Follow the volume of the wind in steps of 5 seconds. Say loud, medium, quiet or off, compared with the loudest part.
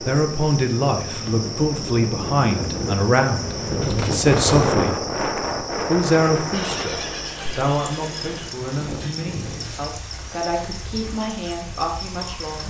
loud, loud, quiet.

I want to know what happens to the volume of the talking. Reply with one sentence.
The volume of the talking goes down.